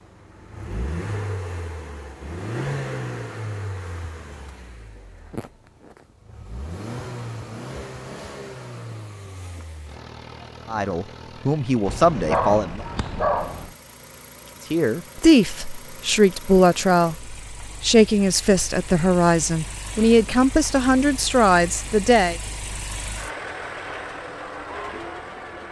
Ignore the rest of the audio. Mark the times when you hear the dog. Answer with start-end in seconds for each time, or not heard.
11.8-13.8.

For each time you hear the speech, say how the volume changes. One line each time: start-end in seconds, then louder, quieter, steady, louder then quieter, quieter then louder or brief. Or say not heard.
10.7-12.8 brief
14.7-22.4 steady.